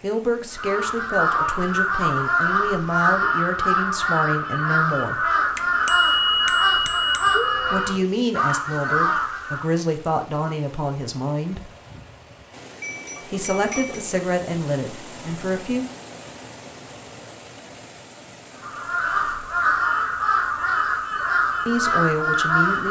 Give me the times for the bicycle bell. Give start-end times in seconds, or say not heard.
5.5-8.1, 12.8-14.1.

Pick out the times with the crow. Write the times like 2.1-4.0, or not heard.
0.5-9.7, 18.6-22.8.